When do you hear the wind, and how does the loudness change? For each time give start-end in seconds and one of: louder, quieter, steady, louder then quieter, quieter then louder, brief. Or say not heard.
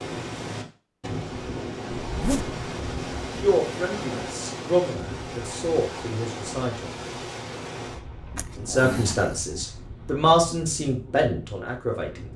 0.0-12.3 quieter.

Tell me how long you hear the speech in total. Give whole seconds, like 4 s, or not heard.
7 s.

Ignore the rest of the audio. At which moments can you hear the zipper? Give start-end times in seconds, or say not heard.
2.0-2.6, 8.3-9.3.